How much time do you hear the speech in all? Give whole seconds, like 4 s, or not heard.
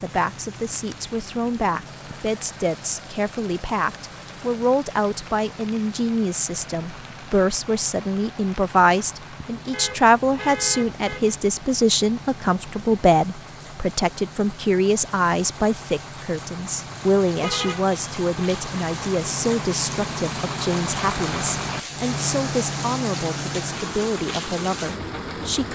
26 s.